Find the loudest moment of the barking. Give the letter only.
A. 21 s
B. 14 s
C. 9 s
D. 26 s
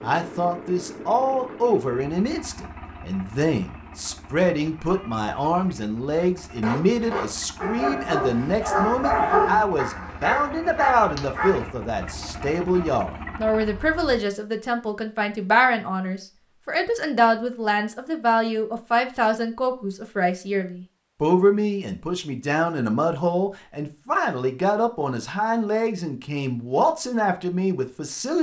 C.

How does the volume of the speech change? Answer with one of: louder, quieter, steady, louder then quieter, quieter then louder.
steady.